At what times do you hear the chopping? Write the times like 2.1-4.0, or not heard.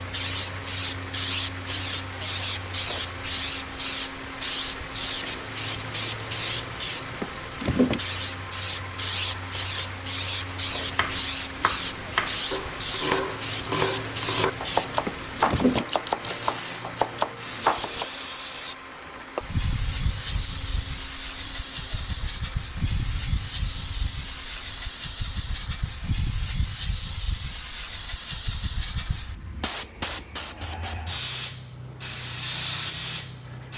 10.7-18.1.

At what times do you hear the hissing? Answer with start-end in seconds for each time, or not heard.
0.0-33.7.